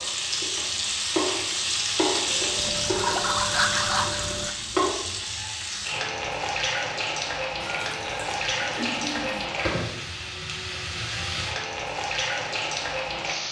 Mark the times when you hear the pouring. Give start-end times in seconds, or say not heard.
2.5-4.5, 7.6-9.4.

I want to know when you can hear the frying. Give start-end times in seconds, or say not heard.
0.0-13.4.